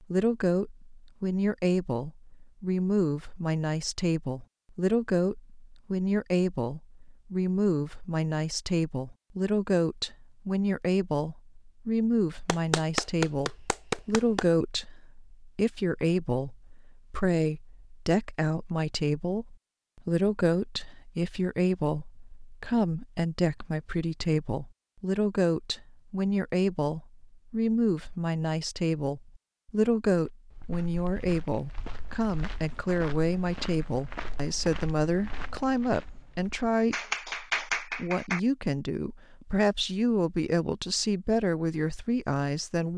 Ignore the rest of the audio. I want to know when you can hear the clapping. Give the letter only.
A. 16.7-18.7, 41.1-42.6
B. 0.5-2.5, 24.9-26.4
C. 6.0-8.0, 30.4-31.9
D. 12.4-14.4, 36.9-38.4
D.